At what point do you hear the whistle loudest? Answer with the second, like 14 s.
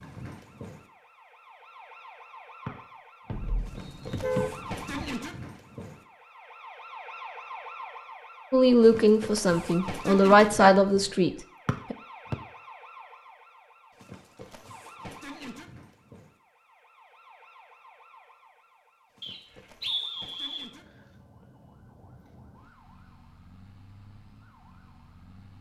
20 s.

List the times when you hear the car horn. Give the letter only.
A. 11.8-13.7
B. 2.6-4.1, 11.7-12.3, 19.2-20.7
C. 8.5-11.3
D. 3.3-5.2
D.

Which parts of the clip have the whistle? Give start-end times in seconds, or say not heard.
2.6-4.1, 11.7-12.3, 19.2-20.7.